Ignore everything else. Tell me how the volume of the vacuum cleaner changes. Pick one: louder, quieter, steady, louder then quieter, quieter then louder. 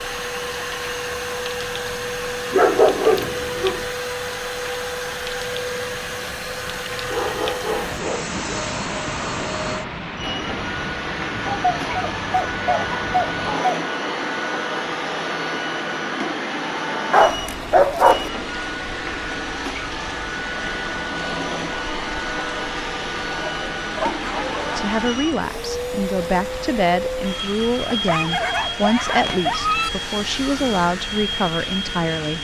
steady.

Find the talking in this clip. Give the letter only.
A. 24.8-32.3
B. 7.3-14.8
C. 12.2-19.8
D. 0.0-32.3
A.